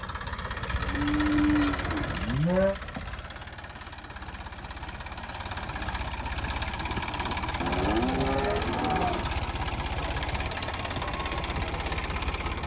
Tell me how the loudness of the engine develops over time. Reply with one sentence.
The volume of the engine goes down, then up.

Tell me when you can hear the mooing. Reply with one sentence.
You can hear the mooing from 0.6 to 2.8 s and from 7.6 to 9.3 s.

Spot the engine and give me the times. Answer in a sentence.
The engine can be heard from 0.0 to 12.6 s.